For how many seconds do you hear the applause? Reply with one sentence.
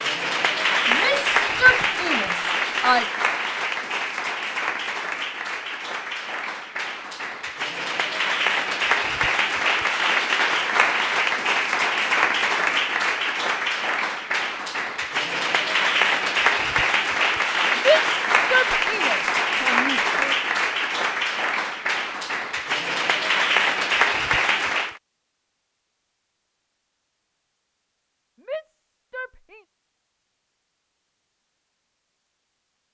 The applause can be heard for 25 seconds in total.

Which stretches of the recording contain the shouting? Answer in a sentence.
The shouting can be heard from 0.8 to 3.0 s, from 17.8 to 20.2 s and from 28.4 to 29.6 s.